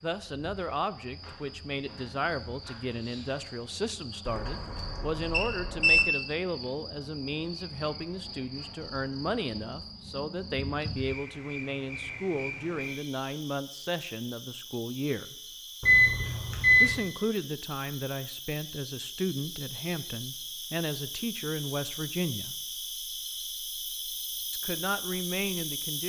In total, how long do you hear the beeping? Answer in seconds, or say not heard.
3 s.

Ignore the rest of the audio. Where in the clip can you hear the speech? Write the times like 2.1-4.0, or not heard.
0.0-15.3, 16.8-22.6, 24.5-26.0.